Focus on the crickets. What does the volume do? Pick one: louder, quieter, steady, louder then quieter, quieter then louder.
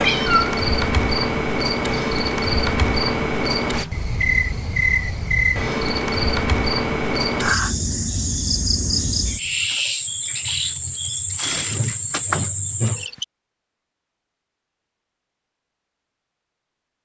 steady.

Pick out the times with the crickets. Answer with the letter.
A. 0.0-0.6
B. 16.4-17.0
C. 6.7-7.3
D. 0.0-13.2
D.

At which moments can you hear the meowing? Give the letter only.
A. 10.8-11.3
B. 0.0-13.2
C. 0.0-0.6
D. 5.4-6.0
C.